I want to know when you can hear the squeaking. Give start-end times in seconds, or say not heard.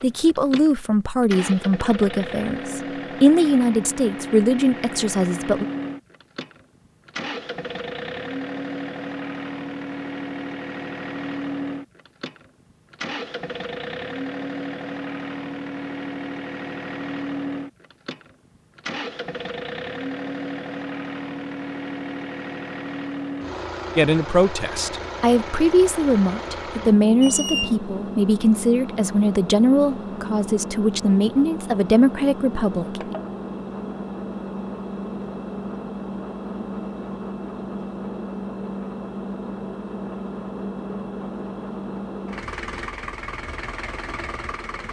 27.2-27.8.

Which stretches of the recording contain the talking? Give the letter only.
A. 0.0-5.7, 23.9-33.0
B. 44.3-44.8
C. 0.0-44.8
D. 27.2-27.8
A.